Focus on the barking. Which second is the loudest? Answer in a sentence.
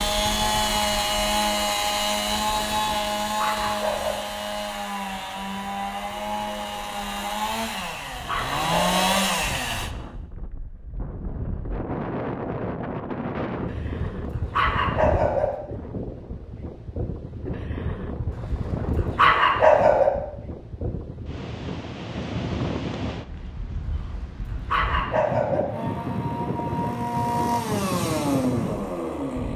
The volume of the barking peaks at 20 seconds.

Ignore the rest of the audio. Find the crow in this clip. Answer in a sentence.
The crow can't be heard in this clip.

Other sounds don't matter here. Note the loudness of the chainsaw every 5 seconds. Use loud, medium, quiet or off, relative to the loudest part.
loud, loud, off, off, off, loud.